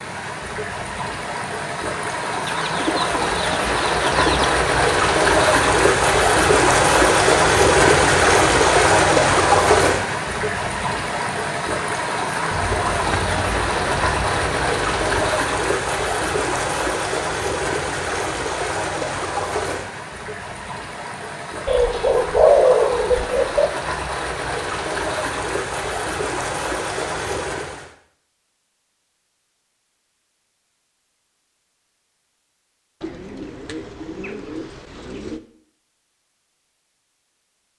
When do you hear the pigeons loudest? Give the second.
23 s.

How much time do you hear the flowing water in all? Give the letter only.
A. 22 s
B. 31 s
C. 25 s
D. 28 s
D.